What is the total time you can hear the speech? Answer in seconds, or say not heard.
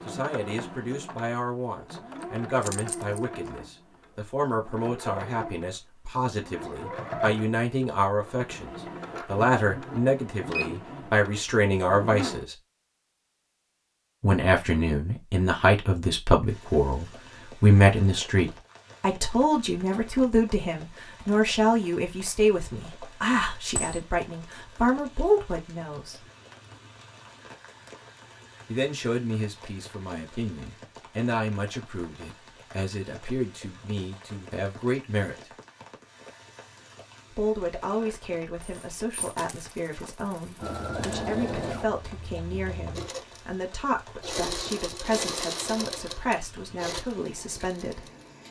42 s.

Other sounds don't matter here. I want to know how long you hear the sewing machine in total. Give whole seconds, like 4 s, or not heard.
20 s.